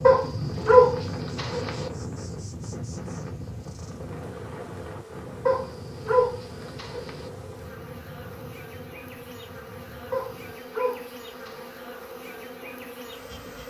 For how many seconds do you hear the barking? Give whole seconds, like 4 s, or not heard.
5 s.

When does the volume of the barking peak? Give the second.
1 s.